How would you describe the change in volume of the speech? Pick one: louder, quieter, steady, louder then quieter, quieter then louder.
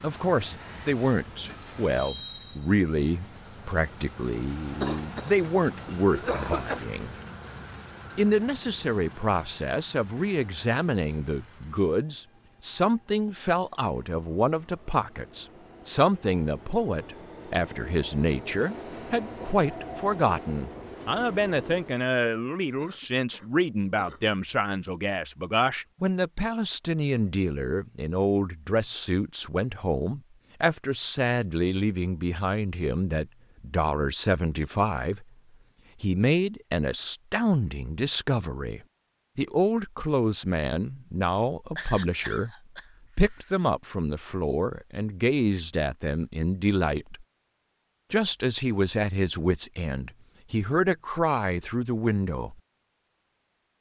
steady.